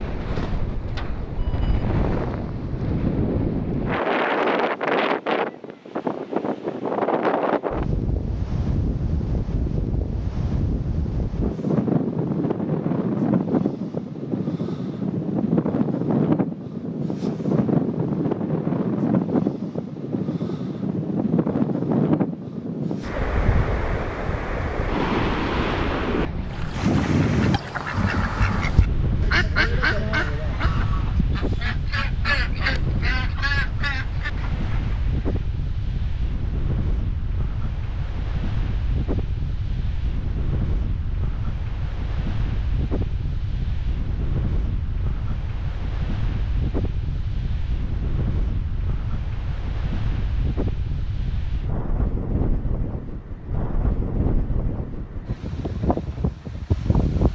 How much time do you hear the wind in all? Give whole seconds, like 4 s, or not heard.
57 s.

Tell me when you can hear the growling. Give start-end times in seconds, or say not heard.
not heard.